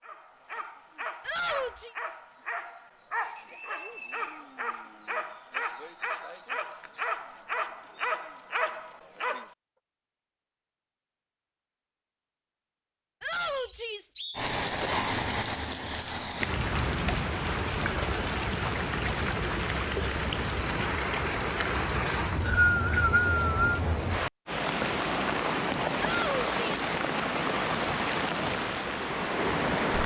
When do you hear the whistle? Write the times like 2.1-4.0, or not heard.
3.4-4.5, 13.6-14.4, 22.1-23.8.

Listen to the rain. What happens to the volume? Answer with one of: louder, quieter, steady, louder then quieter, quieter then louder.
steady.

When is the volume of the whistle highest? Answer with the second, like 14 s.
23 s.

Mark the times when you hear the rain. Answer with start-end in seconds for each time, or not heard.
14.3-30.0.